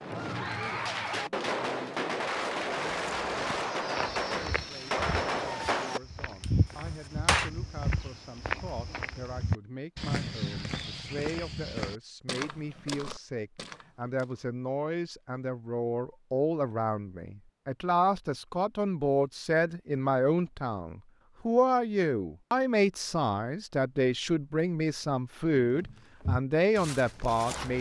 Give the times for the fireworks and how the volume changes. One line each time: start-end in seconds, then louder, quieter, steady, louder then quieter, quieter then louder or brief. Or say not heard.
0.0-7.5 steady.